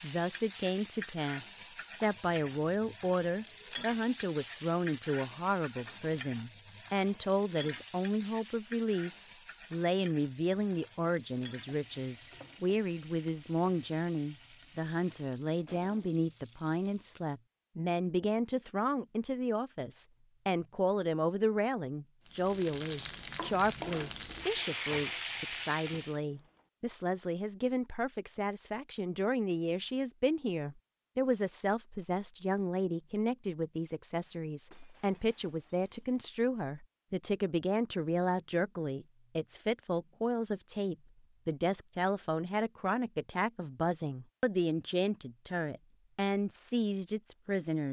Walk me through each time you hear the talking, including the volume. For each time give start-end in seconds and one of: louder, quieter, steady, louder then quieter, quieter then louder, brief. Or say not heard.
0.0-47.8 steady.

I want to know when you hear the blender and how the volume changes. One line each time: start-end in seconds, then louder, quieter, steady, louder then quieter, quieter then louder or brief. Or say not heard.
not heard.